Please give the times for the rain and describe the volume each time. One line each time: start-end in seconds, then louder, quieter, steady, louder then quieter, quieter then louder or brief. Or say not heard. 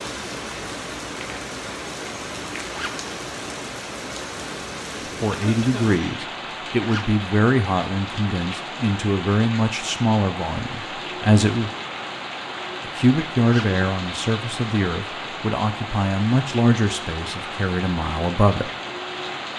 0.0-19.5 steady.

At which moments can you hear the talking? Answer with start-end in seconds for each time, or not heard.
5.0-11.7, 12.8-18.7.